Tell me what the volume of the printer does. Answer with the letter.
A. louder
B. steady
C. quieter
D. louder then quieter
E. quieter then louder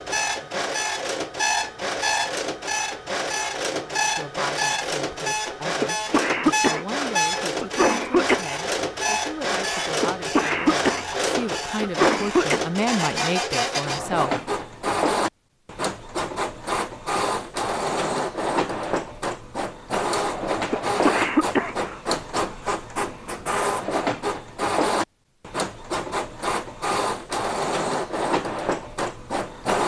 B.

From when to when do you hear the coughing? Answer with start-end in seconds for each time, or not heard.
5.8-8.4, 10.0-12.6, 20.7-22.0.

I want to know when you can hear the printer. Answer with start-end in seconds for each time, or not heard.
0.0-29.8.